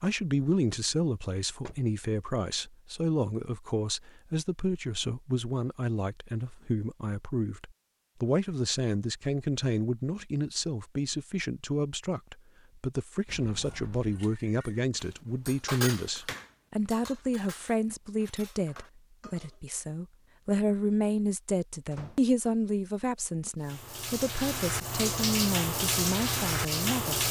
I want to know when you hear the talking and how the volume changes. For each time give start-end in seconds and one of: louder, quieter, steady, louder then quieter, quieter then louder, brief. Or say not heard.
0.0-27.2 steady.